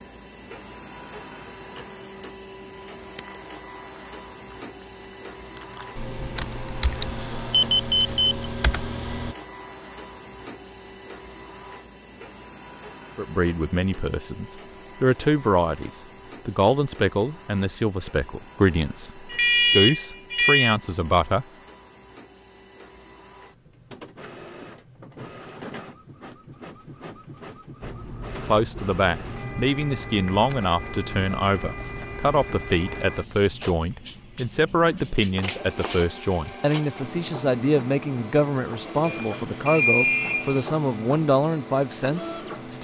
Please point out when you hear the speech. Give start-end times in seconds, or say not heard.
13.2-21.4, 28.4-42.8.